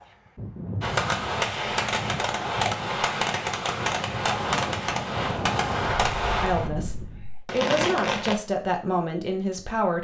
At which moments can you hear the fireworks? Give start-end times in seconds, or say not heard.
0.8-8.3.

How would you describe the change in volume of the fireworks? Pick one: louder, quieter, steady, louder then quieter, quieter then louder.
steady.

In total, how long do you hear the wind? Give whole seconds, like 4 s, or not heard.
7 s.